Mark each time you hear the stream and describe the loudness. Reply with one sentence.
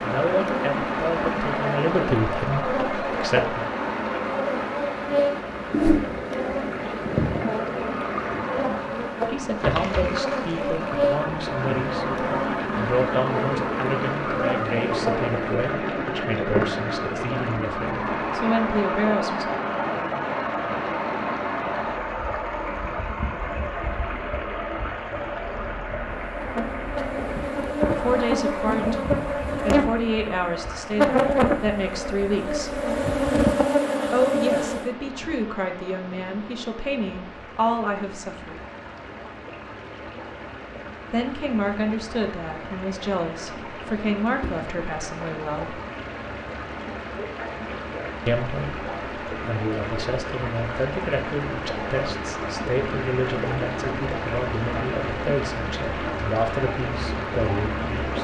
You can hear the stream from 0.0 to 58.1 s, getting quieter then louder.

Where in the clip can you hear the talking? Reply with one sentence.
You can hear the talking from 0.0 to 3.6 s, from 9.2 to 19.6 s, from 27.9 to 32.8 s, from 34.1 to 38.6 s, from 41.1 to 45.8 s and from 48.2 to 58.1 s.